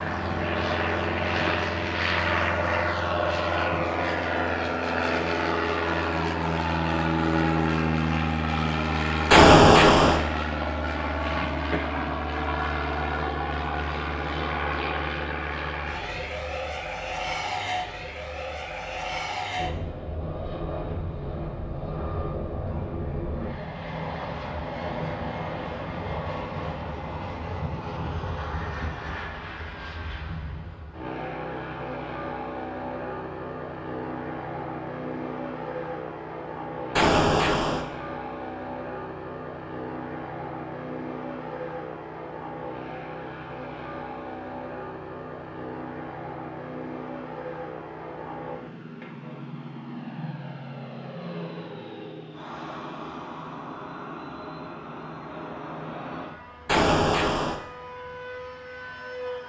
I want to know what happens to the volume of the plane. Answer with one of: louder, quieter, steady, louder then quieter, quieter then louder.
quieter.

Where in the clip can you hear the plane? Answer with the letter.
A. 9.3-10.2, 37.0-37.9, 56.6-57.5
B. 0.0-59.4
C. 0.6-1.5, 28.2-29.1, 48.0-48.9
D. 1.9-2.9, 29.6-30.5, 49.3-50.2
B.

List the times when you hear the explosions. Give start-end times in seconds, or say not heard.
9.3-10.2, 37.0-37.9, 56.6-57.5.